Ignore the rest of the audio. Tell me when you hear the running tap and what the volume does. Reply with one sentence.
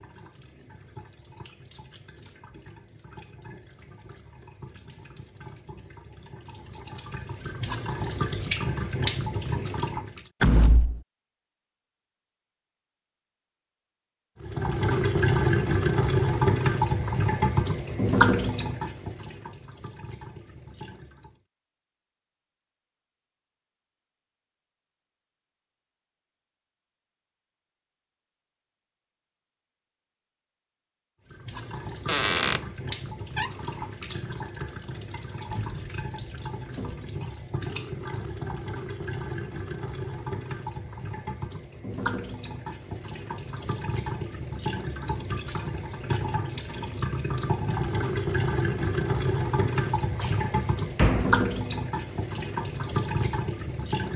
The running tap can be heard from 0.0 to 10.3 s, getting louder; from 14.4 to 21.4 s, getting quieter; and from 31.3 to 54.1 s, getting louder.